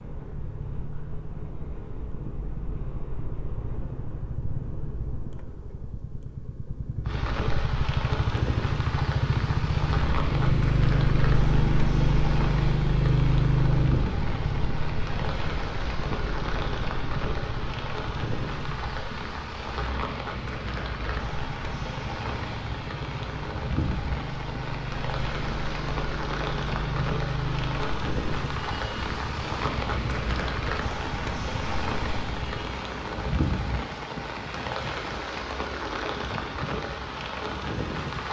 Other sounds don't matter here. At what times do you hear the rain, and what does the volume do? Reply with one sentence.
You can hear the rain from 7.0 to 38.2 s, at a steady volume.